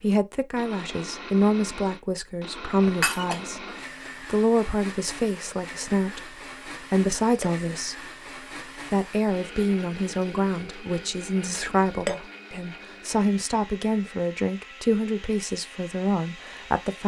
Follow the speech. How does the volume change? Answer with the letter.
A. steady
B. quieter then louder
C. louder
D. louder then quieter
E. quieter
A.